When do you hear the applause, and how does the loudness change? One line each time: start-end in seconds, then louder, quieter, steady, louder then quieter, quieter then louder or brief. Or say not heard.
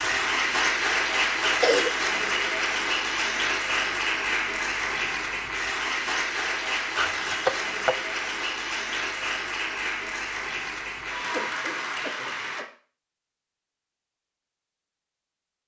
0.0-12.7 quieter.